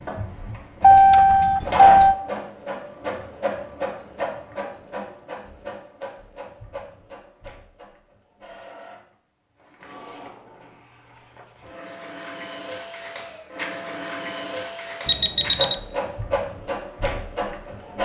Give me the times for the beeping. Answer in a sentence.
You can hear the beeping from 0.8 to 2.1 s and from 15.1 to 15.8 s.